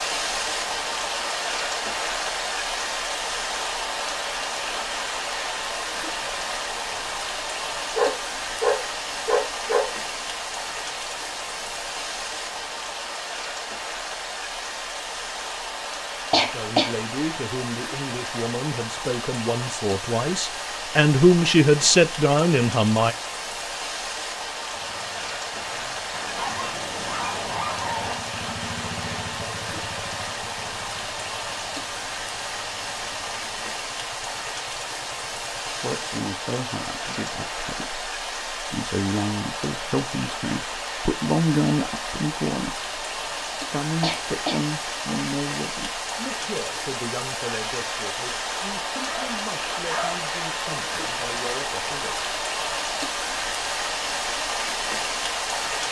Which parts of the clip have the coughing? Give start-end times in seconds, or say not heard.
16.3-16.9, 44.0-44.6.